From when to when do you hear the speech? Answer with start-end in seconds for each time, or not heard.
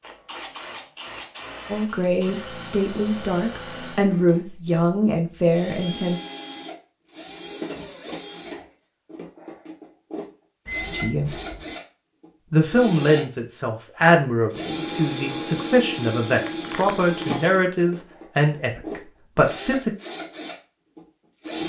1.7-6.2, 10.8-11.3, 12.5-19.9.